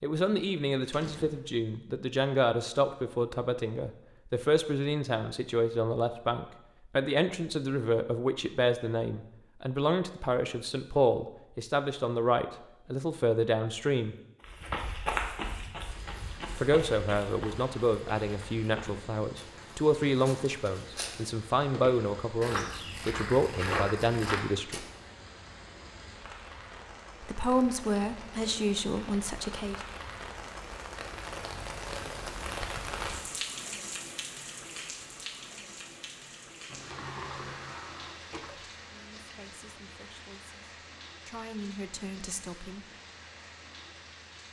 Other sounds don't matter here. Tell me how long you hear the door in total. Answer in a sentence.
The door can be heard for 3 seconds in total.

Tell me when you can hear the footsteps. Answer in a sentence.
You can hear the footsteps from 14.4 to 24.9 s.